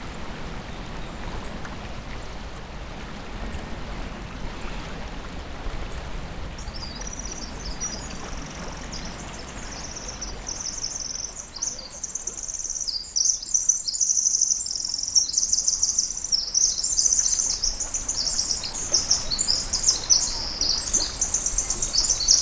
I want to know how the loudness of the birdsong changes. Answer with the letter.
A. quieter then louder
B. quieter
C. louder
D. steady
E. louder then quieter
C.